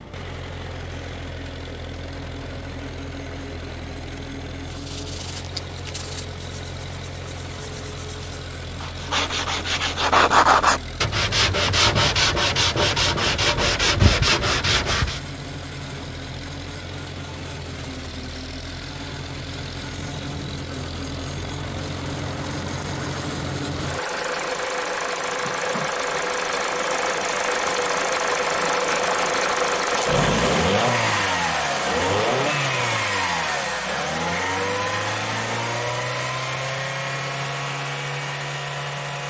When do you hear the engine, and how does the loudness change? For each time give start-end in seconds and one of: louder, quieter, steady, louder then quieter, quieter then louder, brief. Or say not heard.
0.0-39.2 louder.